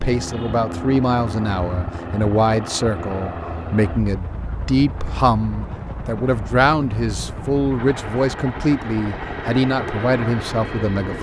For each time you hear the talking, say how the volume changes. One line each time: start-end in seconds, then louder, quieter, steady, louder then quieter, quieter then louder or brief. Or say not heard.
0.0-11.1 steady.